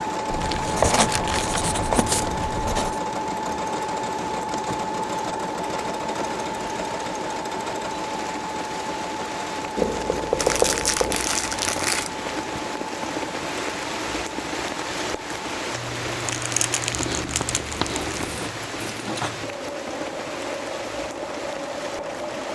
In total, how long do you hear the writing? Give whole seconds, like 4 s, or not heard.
6 s.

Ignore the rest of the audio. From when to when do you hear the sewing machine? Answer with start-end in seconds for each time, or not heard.
0.0-22.5.